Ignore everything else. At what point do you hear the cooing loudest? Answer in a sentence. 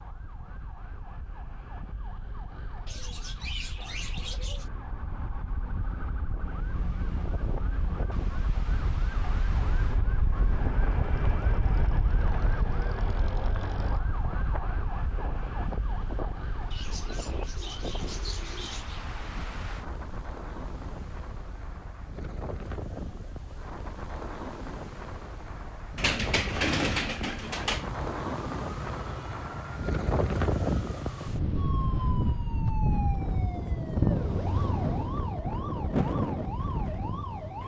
The loudest moment of the cooing is at 27 seconds.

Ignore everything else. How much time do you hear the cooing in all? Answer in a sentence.
The cooing can be heard for 6 seconds in total.